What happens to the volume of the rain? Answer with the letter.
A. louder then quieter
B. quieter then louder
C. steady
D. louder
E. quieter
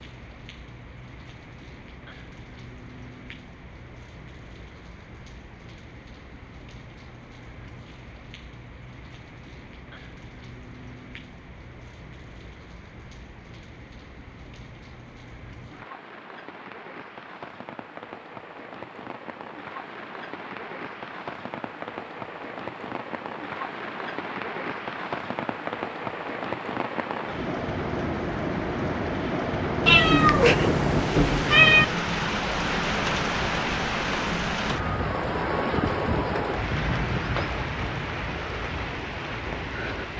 D.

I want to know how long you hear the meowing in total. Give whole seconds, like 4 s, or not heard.
2 s.